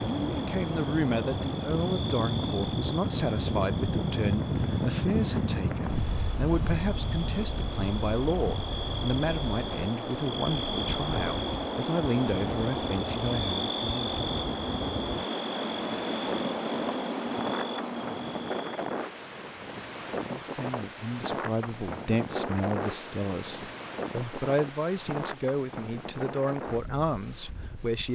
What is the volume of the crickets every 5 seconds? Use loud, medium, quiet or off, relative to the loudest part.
medium, medium, loud, loud, off, off.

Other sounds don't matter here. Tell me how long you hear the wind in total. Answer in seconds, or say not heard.
28 s.